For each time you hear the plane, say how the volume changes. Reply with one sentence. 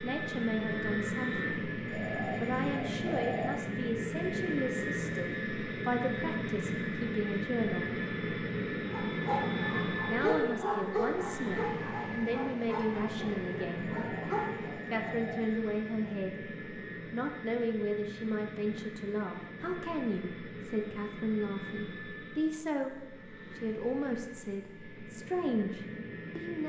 You can hear the plane from 0.0 to 26.6 s, getting quieter.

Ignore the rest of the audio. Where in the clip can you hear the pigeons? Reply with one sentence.
The pigeons can be heard from 1.9 to 3.6 s and from 13.8 to 15.6 s.